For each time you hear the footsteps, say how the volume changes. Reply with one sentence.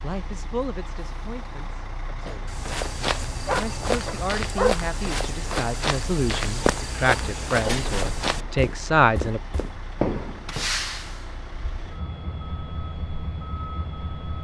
You can hear the footsteps from 2.5 to 10.8 s, at a steady volume.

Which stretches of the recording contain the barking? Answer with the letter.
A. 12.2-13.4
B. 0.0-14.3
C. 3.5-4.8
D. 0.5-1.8
C.